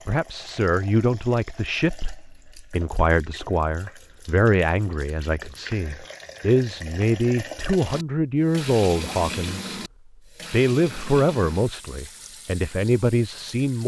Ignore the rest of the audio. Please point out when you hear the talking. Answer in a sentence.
You can hear the talking from 0.1 to 9.8 s and from 10.5 to 13.8 s.